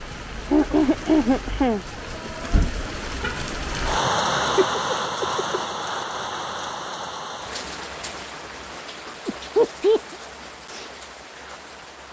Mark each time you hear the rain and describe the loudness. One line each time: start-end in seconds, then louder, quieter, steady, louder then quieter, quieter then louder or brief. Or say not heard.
0.0-12.0 louder then quieter.